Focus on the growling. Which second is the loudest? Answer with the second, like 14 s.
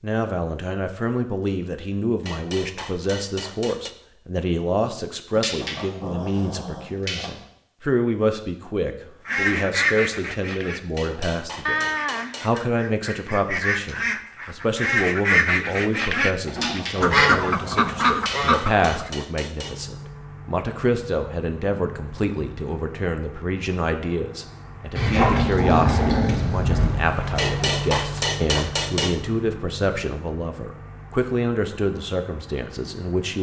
25 s.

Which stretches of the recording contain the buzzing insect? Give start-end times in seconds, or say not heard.
not heard.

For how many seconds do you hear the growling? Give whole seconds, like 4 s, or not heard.
6 s.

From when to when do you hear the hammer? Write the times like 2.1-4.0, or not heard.
2.2-4.0, 10.9-12.7, 17.9-19.9, 27.4-29.2.